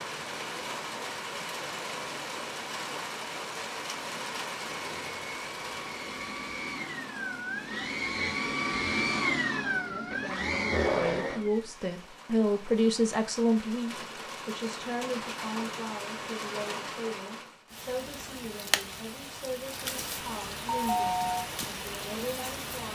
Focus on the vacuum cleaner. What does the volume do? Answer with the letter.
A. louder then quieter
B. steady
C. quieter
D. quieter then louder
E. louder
E.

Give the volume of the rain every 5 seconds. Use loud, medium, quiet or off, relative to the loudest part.
loud, medium, medium, loud, loud.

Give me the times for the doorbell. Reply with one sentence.
You can hear the doorbell from 20.6 to 21.4 s.